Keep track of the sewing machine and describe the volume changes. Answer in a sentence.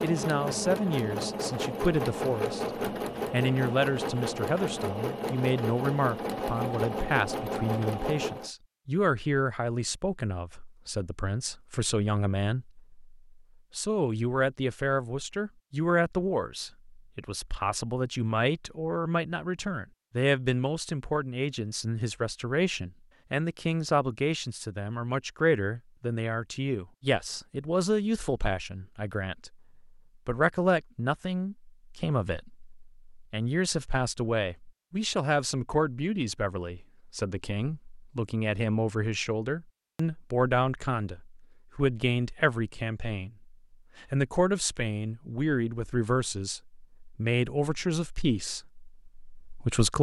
The loudness of the sewing machine stays about the same.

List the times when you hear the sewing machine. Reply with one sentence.
The sewing machine can be heard from 0.0 to 8.5 s.